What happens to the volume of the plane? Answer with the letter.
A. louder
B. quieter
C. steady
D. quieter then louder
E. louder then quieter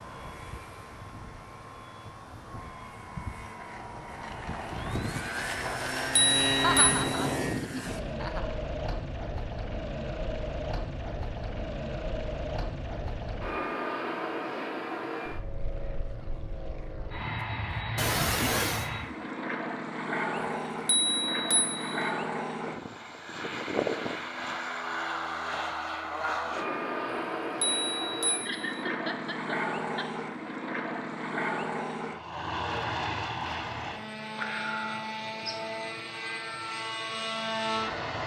C.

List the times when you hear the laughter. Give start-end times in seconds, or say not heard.
6.6-8.6, 17.9-18.9, 28.2-30.1.